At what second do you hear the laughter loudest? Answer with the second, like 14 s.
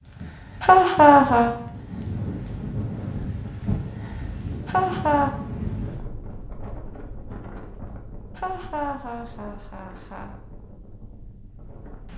1 s.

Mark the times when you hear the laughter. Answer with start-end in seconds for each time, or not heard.
0.6-1.5, 4.7-5.3, 8.3-10.3.